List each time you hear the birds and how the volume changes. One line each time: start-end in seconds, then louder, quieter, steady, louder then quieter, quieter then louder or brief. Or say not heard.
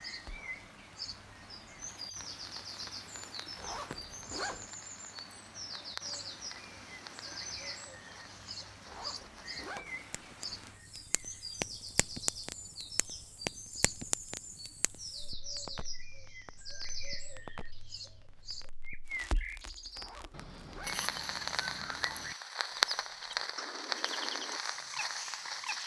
0.0-25.8 steady.